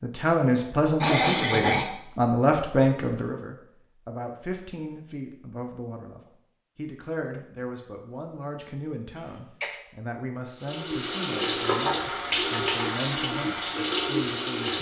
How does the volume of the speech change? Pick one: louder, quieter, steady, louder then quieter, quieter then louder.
quieter.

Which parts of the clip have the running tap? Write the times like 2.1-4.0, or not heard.
10.6-14.7.